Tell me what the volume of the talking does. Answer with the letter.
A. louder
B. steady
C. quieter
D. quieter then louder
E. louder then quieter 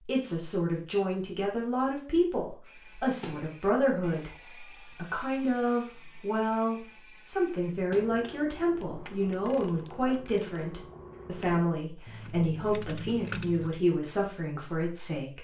B.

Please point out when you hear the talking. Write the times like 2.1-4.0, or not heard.
0.0-15.3.